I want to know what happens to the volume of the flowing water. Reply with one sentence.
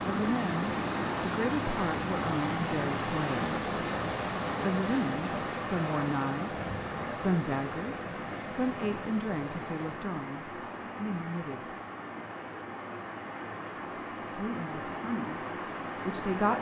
The loudness of the flowing water goes down.